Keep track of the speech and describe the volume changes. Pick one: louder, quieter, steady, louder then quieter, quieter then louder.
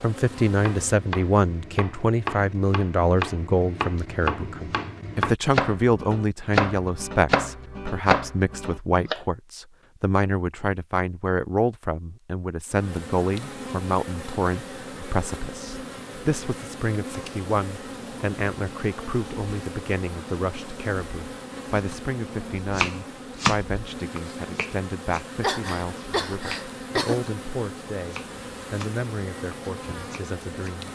quieter.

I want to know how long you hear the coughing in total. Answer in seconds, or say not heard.
2 s.